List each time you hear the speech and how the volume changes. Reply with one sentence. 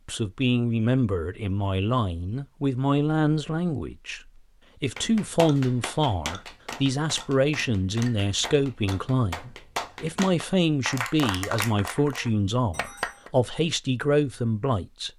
The speech can be heard from 0.1 to 15.1 s, at a steady volume.